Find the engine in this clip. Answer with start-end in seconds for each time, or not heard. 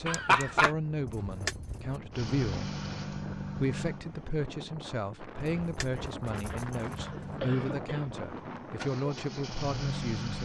2.1-4.3, 6.8-10.4.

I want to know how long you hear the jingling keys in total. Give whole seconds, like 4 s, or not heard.
3 s.